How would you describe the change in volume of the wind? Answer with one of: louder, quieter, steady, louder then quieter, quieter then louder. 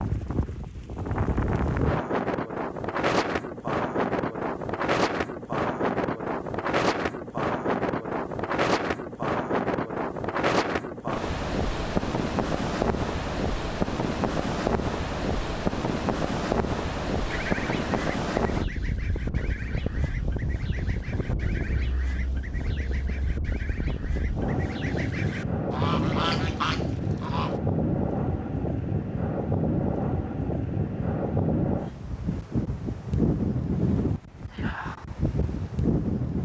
steady.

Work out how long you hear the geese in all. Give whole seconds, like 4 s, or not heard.
10 s.